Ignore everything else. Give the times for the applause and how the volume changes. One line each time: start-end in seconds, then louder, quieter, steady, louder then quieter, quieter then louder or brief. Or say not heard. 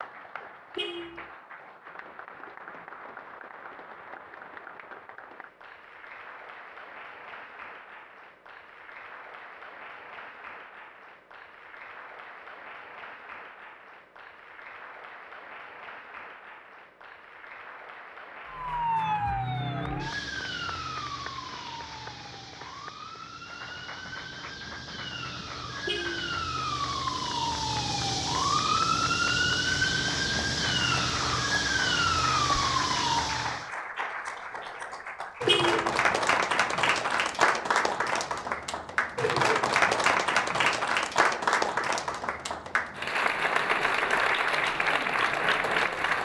0.0-46.1 louder.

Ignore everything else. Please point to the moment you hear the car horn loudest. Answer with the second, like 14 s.
36 s.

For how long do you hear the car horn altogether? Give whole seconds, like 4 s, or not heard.
2 s.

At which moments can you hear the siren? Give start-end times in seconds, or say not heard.
18.4-33.7.